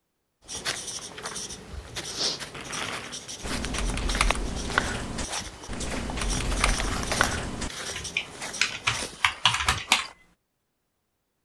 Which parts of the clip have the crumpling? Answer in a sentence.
You can hear the crumpling from 2.5 to 3.2 s and from 6.5 to 7.4 s.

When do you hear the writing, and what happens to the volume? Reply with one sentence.
The writing can be heard from 0.5 to 9.1 s, at a steady volume.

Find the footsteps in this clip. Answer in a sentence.
The footsteps can be heard from 0.5 to 10.2 s.